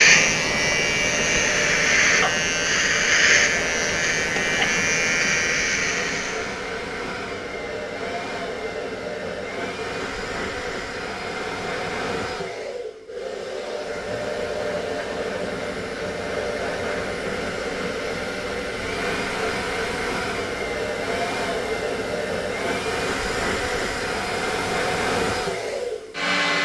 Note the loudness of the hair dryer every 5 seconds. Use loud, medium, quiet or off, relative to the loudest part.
medium, medium, medium, loud, loud, loud.